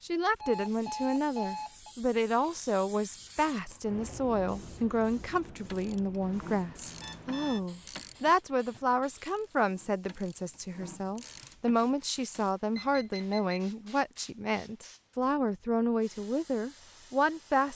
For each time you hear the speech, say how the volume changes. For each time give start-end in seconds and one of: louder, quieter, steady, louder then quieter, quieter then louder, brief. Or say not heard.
0.0-17.7 steady.